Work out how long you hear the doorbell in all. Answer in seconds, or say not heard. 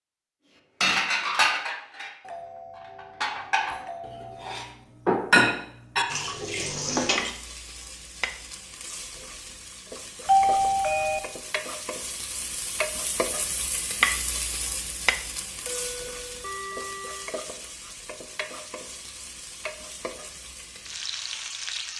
5 s.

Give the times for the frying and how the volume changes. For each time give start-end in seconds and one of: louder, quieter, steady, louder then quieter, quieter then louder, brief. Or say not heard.
6.8-21.9 louder then quieter.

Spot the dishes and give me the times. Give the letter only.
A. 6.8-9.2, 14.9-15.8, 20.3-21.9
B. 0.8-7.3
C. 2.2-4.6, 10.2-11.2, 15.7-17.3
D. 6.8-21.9
B.